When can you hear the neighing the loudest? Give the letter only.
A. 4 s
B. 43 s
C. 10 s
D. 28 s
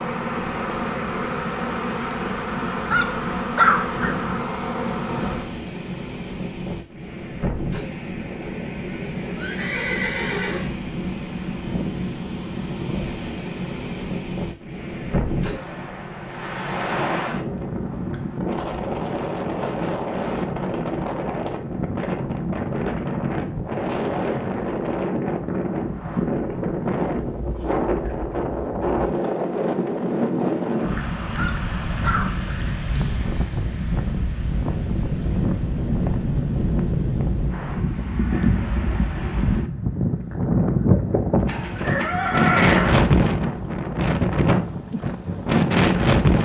B.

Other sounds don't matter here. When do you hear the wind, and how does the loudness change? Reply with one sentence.
You can hear the wind from 0.0 to 46.4 s, getting louder.